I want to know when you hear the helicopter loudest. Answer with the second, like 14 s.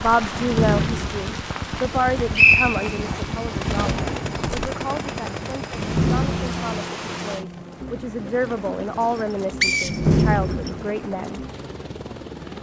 4 s.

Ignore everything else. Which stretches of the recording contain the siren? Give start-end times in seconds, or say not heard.
not heard.